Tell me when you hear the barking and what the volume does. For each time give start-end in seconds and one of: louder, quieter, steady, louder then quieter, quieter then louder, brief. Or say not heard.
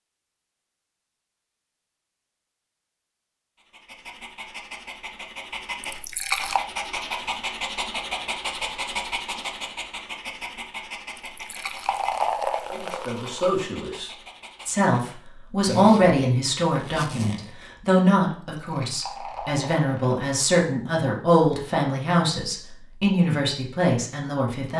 3.5-15.0 louder then quieter.